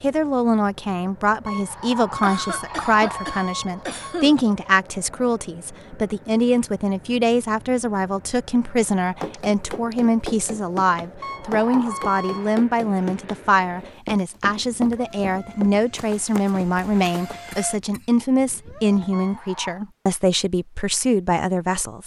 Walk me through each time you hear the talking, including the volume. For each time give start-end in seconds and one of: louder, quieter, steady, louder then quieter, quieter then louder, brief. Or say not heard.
0.0-22.0 steady.